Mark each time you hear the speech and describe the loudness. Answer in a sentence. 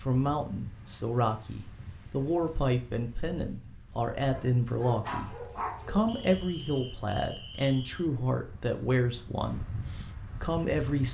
The speech can be heard from 0.0 to 9.8 s, at a steady volume; and briefly from 10.4 to 11.0 s.